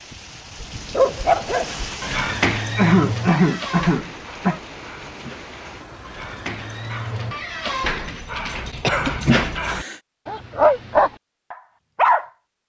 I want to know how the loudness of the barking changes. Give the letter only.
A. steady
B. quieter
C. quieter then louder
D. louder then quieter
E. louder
C.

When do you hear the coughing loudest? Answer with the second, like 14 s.
3 s.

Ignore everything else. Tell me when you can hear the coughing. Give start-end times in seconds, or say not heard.
2.8-4.6, 8.8-9.9.